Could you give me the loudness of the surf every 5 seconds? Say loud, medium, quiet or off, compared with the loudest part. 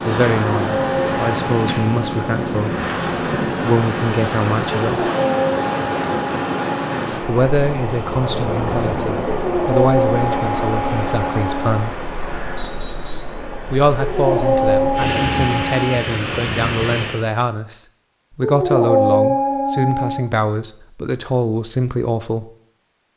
loud, loud, medium, loud, off.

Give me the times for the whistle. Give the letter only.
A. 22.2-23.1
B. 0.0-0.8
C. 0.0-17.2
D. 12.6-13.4
D.